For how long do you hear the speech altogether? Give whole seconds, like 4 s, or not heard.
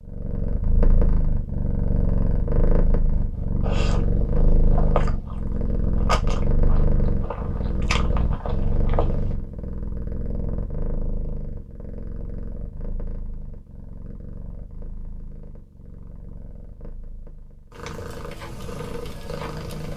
not heard.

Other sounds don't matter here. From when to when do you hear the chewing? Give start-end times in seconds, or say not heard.
3.6-9.3.